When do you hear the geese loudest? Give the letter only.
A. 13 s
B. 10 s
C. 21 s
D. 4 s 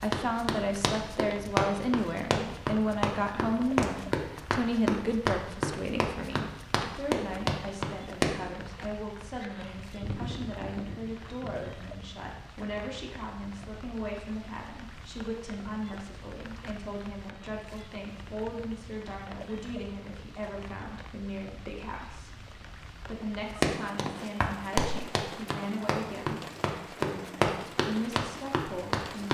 B.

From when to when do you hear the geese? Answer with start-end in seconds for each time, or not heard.
9.4-11.8.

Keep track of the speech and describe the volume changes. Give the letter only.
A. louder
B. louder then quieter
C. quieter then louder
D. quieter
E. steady
D.